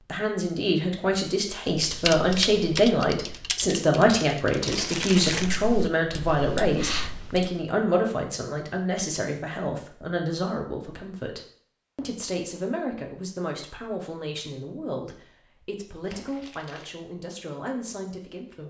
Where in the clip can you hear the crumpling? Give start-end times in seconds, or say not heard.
4.5-5.7, 16.1-16.9.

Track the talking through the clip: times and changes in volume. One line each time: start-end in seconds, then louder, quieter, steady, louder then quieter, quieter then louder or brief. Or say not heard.
0.1-18.6 quieter.